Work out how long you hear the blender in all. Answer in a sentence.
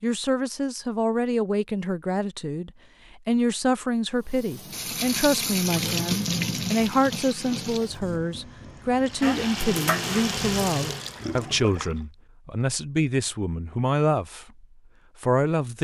The blender can't be heard in this clip.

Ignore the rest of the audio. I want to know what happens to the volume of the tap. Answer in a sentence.
The volume of the tap goes down, then up.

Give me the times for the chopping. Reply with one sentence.
You can hear the chopping from 9.2 to 10.7 s.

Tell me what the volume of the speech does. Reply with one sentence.
The volume of the speech stays about the same.